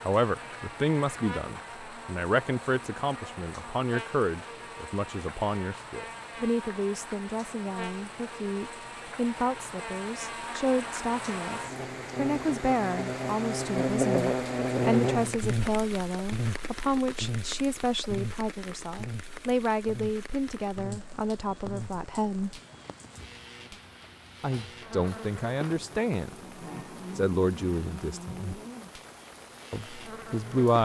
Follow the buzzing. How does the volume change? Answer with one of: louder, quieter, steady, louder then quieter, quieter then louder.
louder then quieter.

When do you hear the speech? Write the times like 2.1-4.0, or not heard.
0.1-22.6, 24.4-26.4, 27.1-28.6, 29.7-30.8.